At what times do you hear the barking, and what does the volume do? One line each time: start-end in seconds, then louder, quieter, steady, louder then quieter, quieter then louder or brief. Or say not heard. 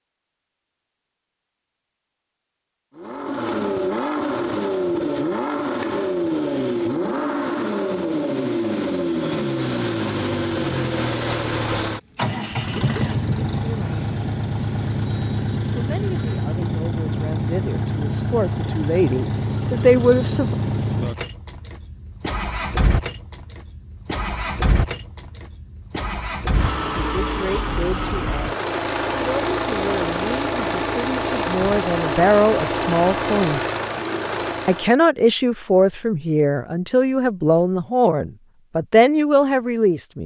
not heard.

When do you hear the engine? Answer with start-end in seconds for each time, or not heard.
3.0-35.0.